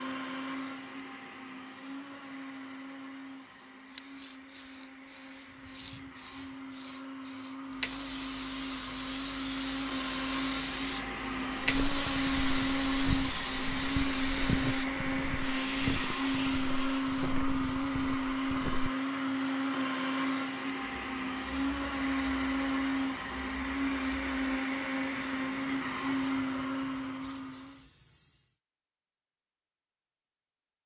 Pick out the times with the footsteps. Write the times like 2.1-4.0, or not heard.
11.6-18.9.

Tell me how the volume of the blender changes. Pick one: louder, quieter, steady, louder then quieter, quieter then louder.
louder.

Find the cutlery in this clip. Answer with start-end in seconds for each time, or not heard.
not heard.